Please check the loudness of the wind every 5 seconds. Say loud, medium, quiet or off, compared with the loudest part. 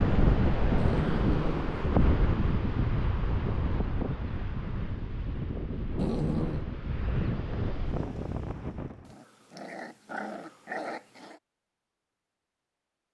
loud, medium, off.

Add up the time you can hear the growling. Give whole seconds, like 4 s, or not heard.
4 s.